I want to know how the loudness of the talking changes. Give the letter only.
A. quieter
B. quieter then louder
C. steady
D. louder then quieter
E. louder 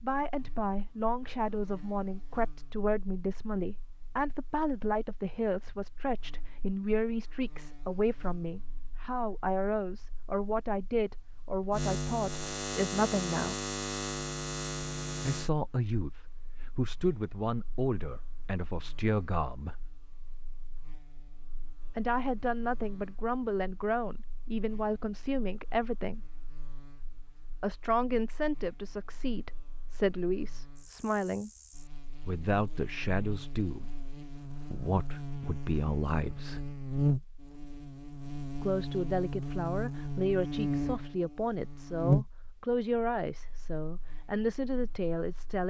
C.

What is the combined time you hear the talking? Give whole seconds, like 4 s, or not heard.
38 s.